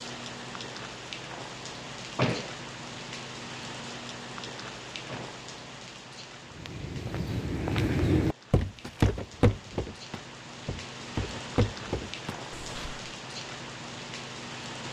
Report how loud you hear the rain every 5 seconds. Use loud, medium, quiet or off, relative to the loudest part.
loud, medium, loud.